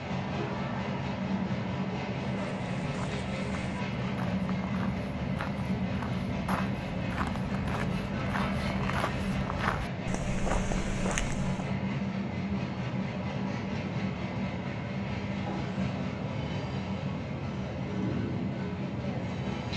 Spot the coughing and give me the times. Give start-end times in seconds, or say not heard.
not heard.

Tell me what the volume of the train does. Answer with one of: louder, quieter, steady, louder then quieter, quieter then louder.
steady.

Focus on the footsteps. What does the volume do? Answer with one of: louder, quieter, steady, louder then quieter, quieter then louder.
louder.